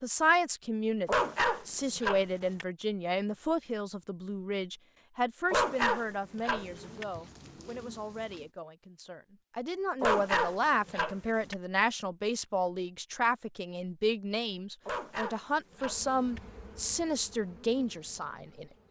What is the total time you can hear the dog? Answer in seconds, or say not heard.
6 s.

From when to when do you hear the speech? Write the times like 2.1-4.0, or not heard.
0.0-18.6.